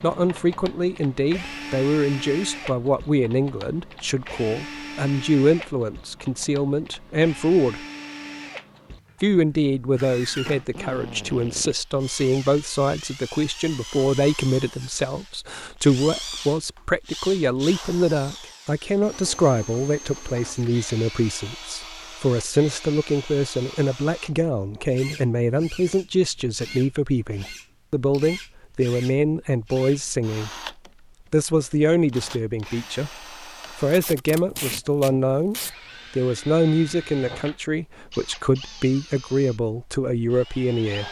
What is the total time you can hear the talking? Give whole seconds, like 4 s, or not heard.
38 s.